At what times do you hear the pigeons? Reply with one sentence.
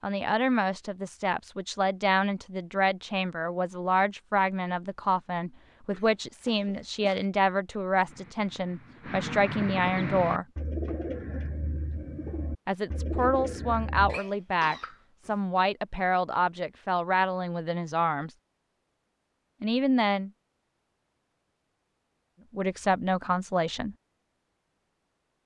The pigeons can be heard from 8.0 to 14.2 s.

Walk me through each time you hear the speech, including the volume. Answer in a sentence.
You can hear the speech from 0.0 to 10.4 s, at a steady volume; from 12.7 to 18.3 s, at a steady volume; briefly from 19.6 to 20.3 s; and briefly from 22.5 to 23.9 s.